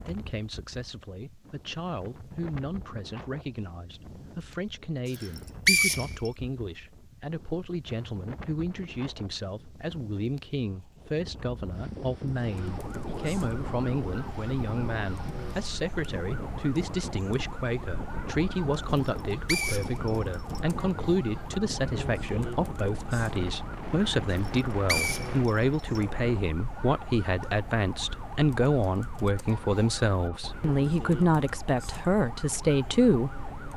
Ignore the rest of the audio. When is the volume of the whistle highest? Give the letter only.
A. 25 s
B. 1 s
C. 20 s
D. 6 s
D.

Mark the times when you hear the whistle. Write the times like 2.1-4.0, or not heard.
5.2-6.3, 19.1-20.6, 24.4-26.0.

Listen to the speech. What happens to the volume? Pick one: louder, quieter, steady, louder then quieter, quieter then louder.
louder.